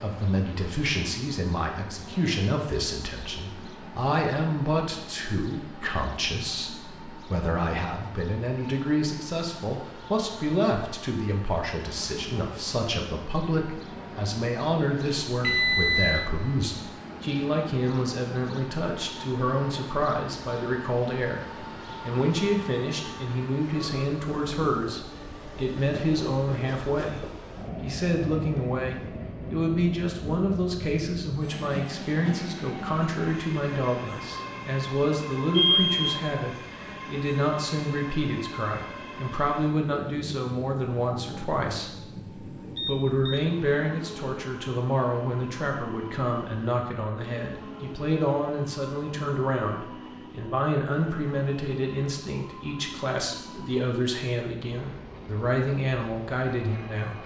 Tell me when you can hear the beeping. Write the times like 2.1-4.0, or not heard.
15.4-16.3, 35.5-36.1, 42.8-43.5.